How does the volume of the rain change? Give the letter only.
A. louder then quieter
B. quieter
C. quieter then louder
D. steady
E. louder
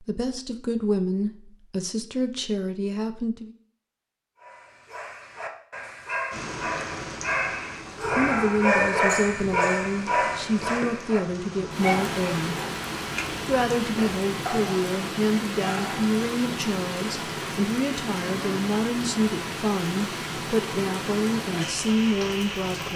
E.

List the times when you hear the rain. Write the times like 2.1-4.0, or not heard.
6.3-22.9.